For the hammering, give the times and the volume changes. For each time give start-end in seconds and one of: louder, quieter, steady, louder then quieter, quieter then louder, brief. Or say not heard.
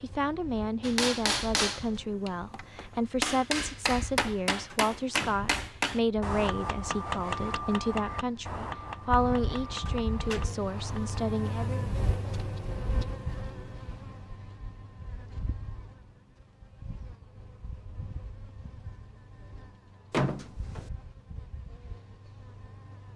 0.8-11.3 quieter.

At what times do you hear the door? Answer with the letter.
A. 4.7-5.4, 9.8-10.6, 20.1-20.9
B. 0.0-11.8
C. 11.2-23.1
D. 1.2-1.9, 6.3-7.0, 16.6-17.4
A.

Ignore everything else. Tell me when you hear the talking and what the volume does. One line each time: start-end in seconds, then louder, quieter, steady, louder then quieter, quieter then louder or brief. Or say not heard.
0.0-11.8 steady.